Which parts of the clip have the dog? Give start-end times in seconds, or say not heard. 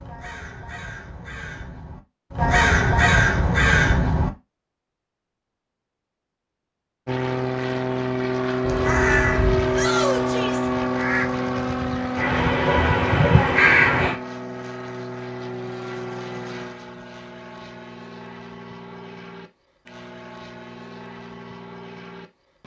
not heard.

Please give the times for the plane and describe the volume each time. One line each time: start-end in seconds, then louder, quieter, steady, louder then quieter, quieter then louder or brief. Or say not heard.
7.0-22.6 quieter.